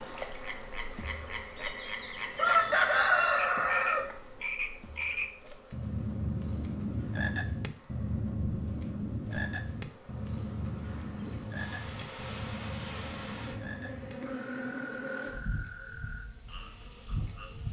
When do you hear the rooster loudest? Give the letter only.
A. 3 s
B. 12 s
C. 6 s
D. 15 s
A.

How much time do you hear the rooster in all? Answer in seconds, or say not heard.
2 s.